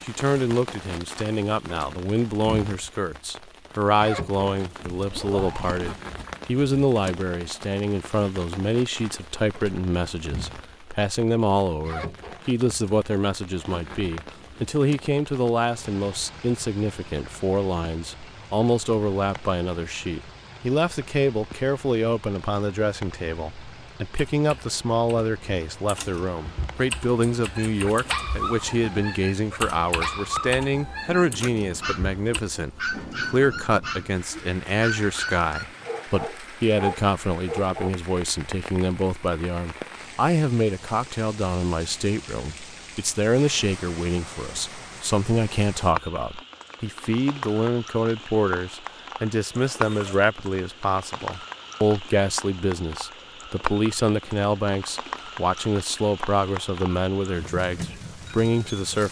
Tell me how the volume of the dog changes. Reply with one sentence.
The loudness of the dog stays about the same.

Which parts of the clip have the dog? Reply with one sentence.
You can hear the dog from 27.4 to 37.9 s.